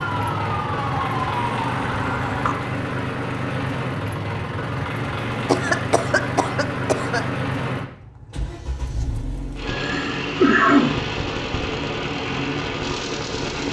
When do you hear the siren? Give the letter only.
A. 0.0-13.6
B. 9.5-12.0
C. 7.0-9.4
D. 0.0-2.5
D.